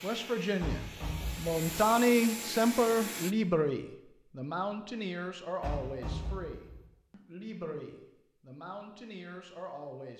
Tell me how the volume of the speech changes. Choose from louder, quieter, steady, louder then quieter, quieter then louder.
quieter.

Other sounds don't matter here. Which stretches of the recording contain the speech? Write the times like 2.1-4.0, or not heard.
0.0-10.1.